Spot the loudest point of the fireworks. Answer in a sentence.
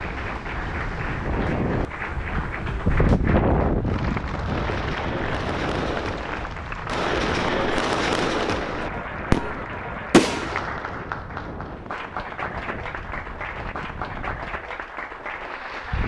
The volume of the fireworks peaks at 10 seconds.